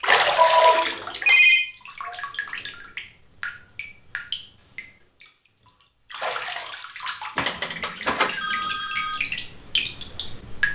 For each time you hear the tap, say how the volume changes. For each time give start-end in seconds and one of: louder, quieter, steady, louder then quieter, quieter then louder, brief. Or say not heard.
0.0-10.6 quieter then louder.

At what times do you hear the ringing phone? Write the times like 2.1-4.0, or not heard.
0.3-2.1, 7.3-9.2.